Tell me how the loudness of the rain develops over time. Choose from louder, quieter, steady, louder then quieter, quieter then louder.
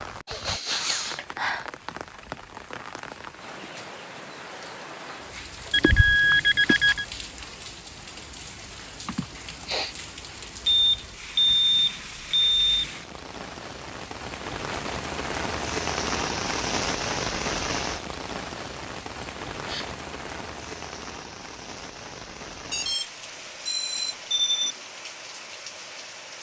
louder then quieter.